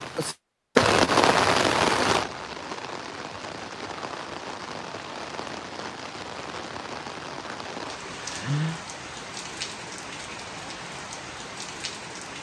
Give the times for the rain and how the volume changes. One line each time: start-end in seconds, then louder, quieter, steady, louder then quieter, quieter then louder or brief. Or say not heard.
0.0-12.3 quieter.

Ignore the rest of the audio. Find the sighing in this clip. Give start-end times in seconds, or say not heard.
8.2-8.8.